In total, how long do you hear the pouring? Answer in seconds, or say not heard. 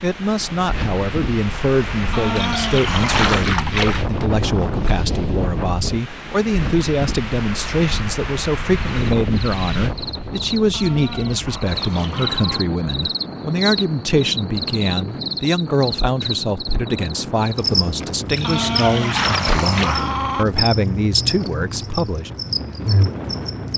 4 s.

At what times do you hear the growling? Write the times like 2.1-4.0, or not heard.
2.1-3.5, 10.7-12.7, 18.4-20.4.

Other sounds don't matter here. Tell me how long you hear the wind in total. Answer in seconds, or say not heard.
24 s.